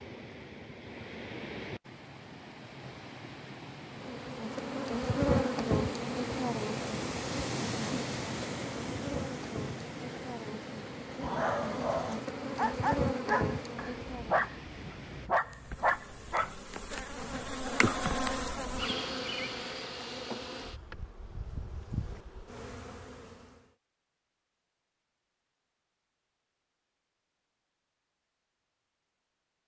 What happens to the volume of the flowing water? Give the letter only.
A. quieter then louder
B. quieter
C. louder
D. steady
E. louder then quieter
E.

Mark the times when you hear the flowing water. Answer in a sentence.
You can hear the flowing water from 0.0 to 15.3 s.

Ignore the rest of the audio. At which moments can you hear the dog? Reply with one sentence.
You can hear the dog from 11.1 to 16.6 s.